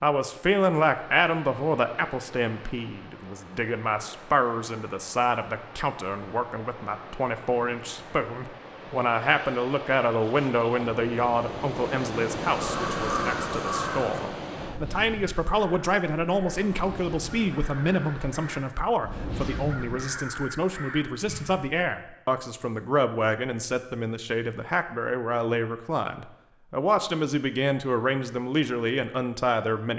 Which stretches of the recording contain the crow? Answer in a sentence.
You can hear the crow from 12.6 to 21.6 s.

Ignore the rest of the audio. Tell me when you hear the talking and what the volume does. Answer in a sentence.
The talking can be heard from 0.0 to 29.9 s, at a steady volume.